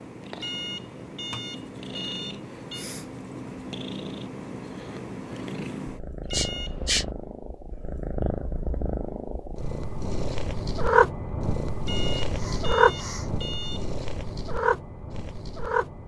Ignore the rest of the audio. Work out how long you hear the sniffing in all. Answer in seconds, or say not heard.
3 s.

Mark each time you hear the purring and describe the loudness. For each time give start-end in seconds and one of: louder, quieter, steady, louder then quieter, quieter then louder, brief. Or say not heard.
0.0-16.0 louder.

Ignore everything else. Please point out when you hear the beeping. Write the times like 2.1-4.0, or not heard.
0.3-2.9, 6.2-6.8, 11.8-13.8.